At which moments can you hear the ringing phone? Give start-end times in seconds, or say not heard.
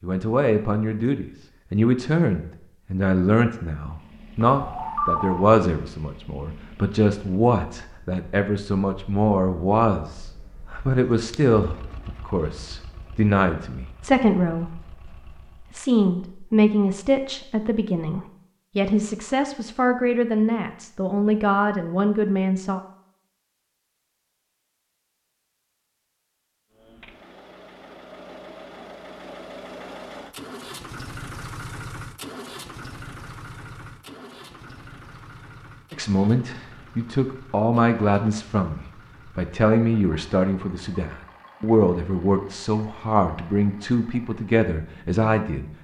4.5-5.3.